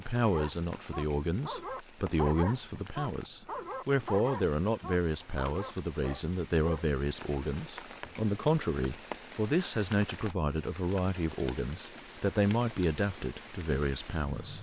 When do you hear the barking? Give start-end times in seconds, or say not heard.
0.2-6.8.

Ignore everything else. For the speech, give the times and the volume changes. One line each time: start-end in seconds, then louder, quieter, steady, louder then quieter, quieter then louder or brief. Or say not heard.
0.0-14.5 steady.